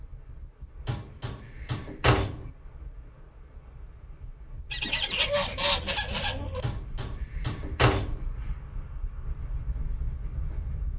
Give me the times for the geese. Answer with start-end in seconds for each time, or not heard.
4.7-6.7.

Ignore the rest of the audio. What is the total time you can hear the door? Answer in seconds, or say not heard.
3 s.